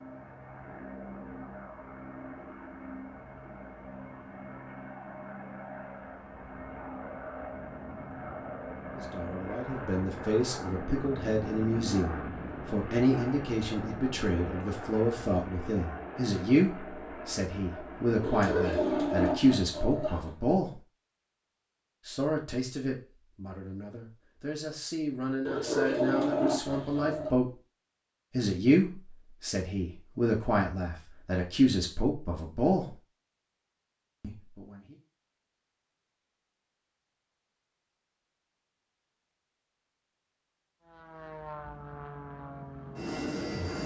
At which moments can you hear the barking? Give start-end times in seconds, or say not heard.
18.2-20.3, 25.4-27.3.